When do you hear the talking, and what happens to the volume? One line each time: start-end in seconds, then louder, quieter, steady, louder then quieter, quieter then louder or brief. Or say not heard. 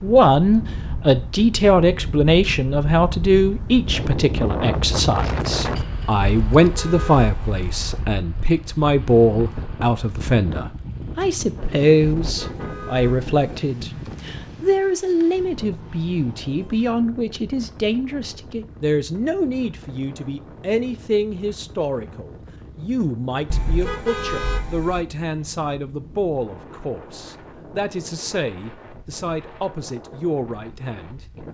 0.0-31.2 quieter.